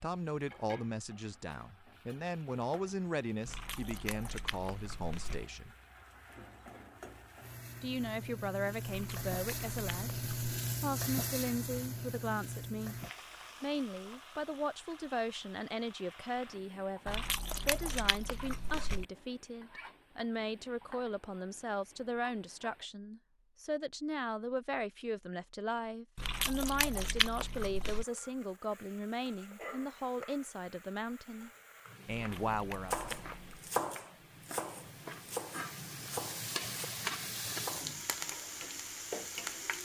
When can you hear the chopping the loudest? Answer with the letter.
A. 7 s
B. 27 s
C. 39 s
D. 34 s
D.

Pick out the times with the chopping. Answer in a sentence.
The chopping can be heard from 32.4 to 36.9 s and from 37.5 to 38.0 s.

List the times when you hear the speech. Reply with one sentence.
The speech can be heard from 0.0 to 5.8 s, from 7.8 to 10.2 s, from 10.8 to 12.9 s and from 13.6 to 33.1 s.